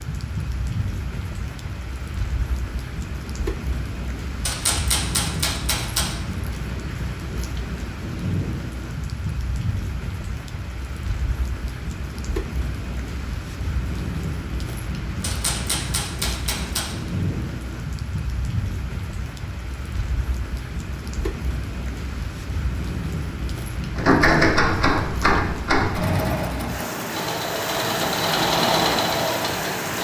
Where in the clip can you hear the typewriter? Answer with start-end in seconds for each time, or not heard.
4.5-6.2, 15.2-16.9, 23.9-25.9.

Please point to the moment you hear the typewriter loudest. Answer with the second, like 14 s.
24 s.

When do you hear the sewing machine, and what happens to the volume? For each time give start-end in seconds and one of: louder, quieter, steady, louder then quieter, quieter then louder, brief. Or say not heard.
25.9-29.9 louder.